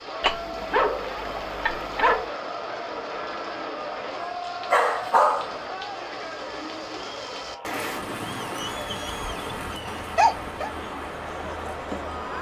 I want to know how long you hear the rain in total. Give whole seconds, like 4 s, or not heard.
12 s.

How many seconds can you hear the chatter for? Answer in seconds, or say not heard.
12 s.